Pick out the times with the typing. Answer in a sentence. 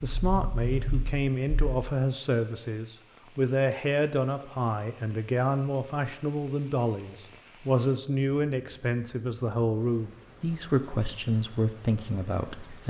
The typing can be heard from 0.1 to 1.6 s.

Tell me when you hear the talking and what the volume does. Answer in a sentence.
The talking can be heard from 0.0 to 12.8 s, at a steady volume.